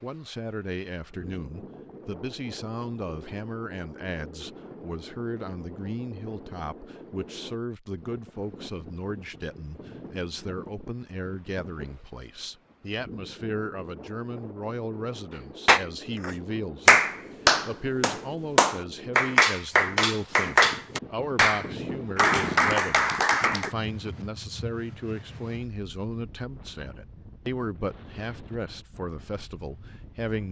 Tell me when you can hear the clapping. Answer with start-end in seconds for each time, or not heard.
15.7-23.7.